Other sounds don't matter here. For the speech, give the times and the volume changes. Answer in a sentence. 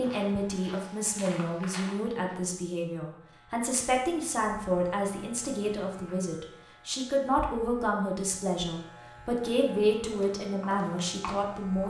The speech can be heard from 0.0 to 11.8 s, at a steady volume.